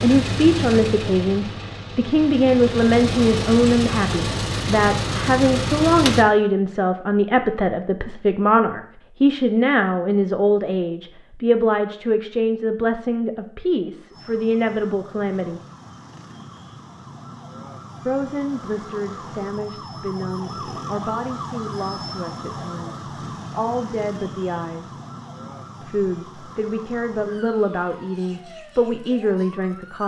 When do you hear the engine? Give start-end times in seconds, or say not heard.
0.0-6.2.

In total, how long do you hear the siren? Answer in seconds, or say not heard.
16 s.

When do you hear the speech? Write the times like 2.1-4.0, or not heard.
0.0-15.6, 18.1-24.9, 25.8-30.0.